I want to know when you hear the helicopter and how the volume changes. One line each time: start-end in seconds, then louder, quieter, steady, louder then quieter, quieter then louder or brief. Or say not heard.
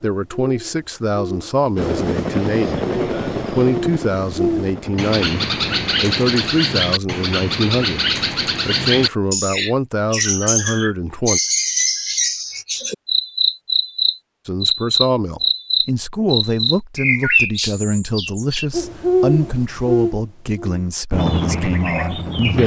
1.8-6.4 quieter
21.1-22.6 brief.